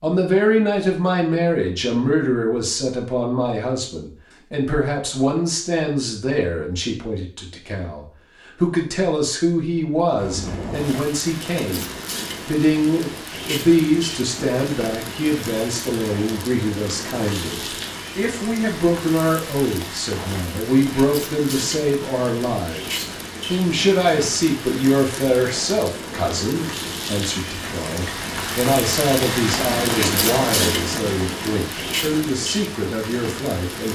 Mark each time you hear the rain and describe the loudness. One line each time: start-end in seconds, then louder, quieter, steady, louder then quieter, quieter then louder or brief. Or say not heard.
10.2-33.9 louder.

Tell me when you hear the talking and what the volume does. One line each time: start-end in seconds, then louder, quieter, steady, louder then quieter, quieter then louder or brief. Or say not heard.
0.0-33.9 steady.